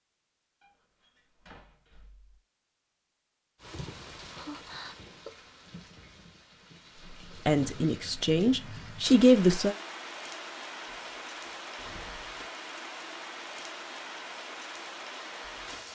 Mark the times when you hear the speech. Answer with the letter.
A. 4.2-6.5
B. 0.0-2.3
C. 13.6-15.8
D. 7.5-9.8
D.